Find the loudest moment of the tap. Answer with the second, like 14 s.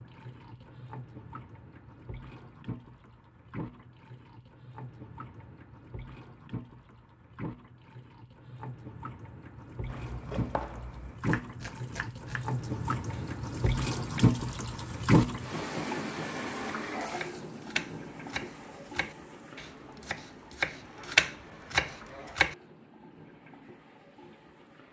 15 s.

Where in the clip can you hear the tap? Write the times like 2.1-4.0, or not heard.
0.0-24.8.